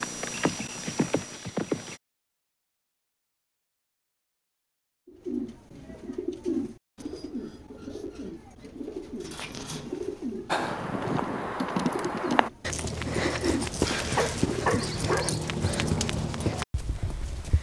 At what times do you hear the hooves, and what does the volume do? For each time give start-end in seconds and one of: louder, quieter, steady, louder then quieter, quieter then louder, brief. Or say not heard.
0.0-1.9 brief
10.4-17.5 steady.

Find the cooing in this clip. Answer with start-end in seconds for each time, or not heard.
5.0-15.0.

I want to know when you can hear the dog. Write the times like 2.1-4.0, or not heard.
13.8-15.3.